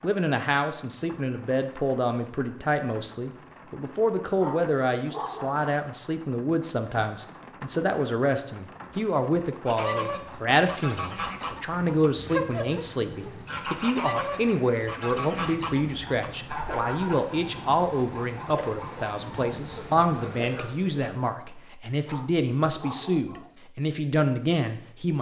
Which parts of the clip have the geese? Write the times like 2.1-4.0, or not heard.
9.7-21.6.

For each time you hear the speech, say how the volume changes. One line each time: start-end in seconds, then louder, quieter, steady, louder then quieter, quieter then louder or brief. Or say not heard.
0.0-25.1 steady.